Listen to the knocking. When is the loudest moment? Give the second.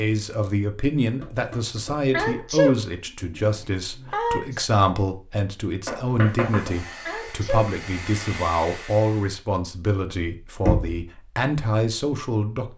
11 s.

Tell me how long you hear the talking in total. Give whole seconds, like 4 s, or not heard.
13 s.